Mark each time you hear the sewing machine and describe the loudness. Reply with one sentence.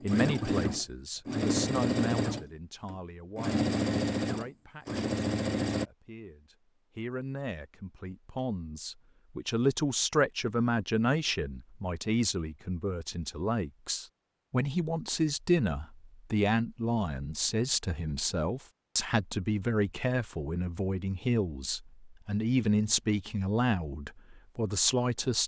The sewing machine can be heard from 0.0 to 5.9 s, getting quieter then louder.